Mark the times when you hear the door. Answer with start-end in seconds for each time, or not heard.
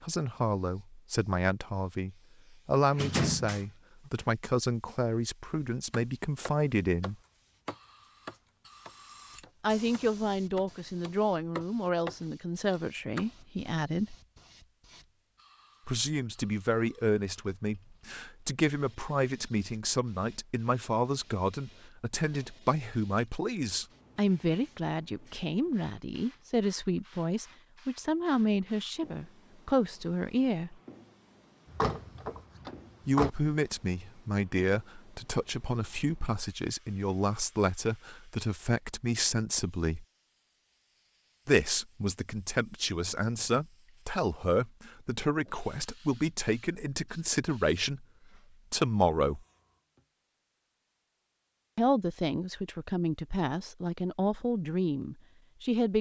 2.9-4.1, 31.7-33.3.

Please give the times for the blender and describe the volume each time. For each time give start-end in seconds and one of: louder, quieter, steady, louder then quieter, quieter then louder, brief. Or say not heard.
not heard.